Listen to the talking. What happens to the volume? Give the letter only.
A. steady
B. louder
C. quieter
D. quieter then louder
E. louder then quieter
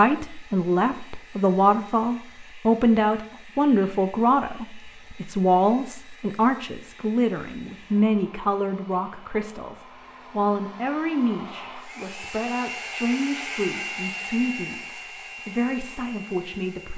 C.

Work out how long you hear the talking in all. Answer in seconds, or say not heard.
17 s.